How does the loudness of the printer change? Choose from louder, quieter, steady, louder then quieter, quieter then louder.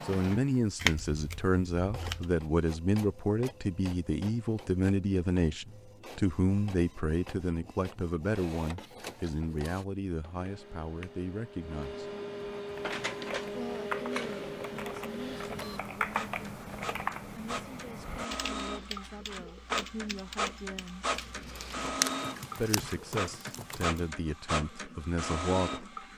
louder.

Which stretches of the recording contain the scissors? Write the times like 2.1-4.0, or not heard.
0.8-2.4, 21.1-23.6.